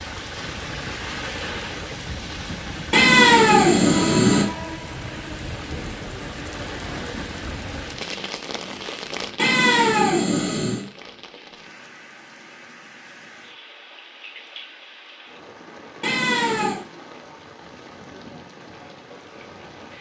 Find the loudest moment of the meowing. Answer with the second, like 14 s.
3 s.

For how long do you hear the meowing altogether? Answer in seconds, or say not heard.
4 s.